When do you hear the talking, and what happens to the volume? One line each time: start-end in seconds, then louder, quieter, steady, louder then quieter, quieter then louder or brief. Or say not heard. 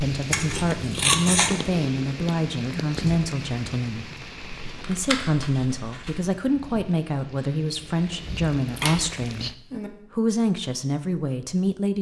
0.0-11.9 steady.